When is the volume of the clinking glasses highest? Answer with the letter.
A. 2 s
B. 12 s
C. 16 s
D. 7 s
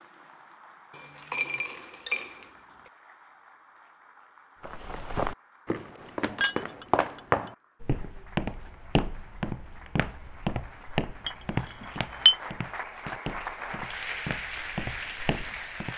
B.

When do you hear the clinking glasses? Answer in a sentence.
You can hear the clinking glasses from 0.9 to 2.5 s, from 6.3 to 7.5 s and from 11.2 to 12.3 s.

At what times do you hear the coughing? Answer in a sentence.
The coughing can't be heard in this clip.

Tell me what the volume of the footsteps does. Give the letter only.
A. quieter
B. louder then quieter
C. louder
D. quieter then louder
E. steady
A.